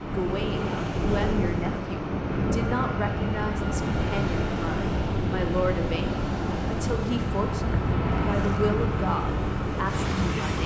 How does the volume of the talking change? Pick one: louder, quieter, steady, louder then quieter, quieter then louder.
steady.